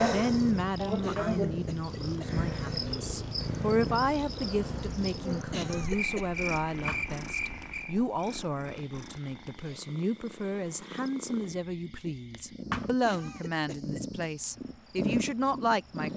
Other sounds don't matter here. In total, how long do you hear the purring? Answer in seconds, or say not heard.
16 s.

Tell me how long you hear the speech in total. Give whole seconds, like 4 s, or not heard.
16 s.